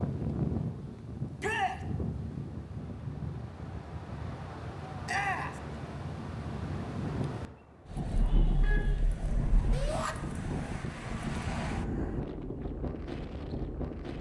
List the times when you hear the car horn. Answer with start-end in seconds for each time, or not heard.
8.2-9.9.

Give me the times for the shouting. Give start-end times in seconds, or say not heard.
1.4-1.8, 5.0-5.6, 9.7-10.2.